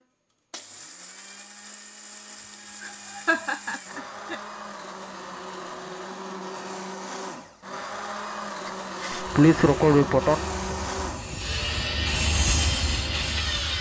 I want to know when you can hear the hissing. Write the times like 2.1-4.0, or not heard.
8.8-13.7.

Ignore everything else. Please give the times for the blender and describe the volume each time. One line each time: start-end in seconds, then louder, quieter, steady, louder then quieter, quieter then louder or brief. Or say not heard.
0.0-13.7 louder.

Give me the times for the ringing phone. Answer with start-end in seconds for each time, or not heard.
not heard.